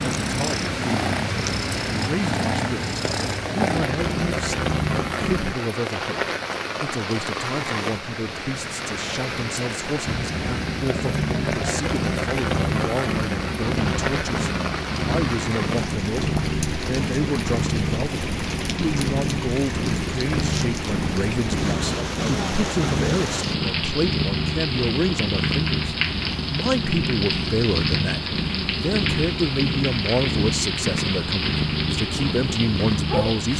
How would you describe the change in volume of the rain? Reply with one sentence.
The loudness of the rain stays about the same.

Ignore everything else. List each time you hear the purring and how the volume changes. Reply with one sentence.
The purring can be heard from 0.0 to 5.5 s, at a steady volume; and from 10.1 to 33.5 s, at a steady volume.